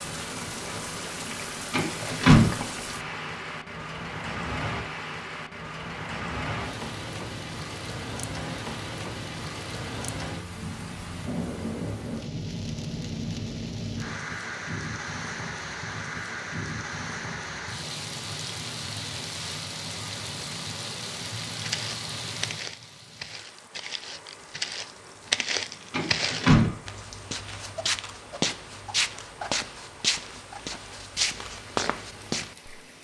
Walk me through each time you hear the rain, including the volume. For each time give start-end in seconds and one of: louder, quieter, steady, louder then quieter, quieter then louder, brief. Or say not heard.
0.0-32.9 quieter.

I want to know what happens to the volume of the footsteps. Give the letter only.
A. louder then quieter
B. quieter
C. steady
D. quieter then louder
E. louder
E.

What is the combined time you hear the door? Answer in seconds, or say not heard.
2 s.